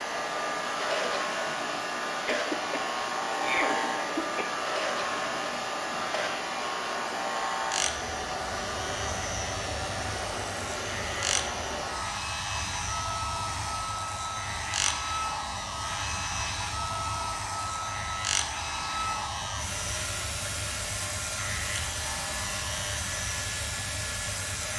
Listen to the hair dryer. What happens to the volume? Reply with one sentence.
The volume of the hair dryer stays about the same.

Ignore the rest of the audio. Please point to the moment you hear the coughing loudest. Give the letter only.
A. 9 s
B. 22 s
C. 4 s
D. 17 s
C.